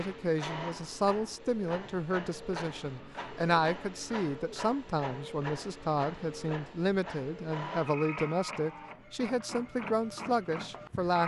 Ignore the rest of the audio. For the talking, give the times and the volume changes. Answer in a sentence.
The talking can be heard from 0.0 to 11.2 s, at a steady volume.